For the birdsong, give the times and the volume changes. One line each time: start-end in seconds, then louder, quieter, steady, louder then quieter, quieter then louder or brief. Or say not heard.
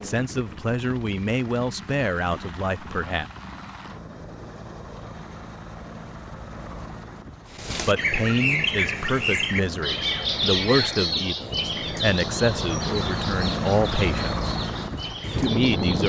7.5-16.0 quieter.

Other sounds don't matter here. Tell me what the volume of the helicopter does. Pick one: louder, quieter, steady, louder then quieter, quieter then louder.
louder.